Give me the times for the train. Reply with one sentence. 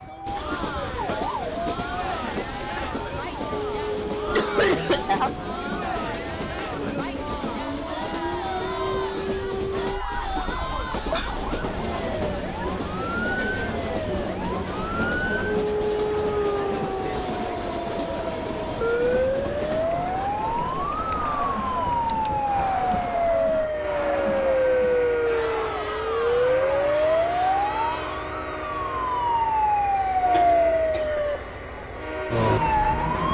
You can hear the train from 0.0 to 33.3 s.